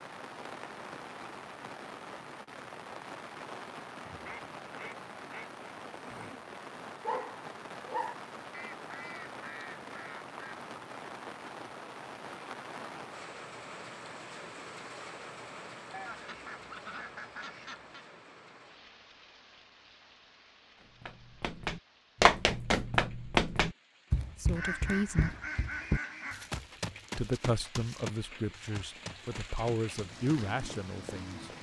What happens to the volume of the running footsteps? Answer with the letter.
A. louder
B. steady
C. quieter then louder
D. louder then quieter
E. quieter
E.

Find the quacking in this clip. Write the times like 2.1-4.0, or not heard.
4.0-5.5, 8.5-10.6, 15.9-18.1, 24.6-26.5.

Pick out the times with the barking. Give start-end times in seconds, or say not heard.
7.0-8.2.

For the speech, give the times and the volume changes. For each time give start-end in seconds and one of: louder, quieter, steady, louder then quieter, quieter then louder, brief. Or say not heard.
24.4-25.4 brief
27.1-31.5 louder then quieter.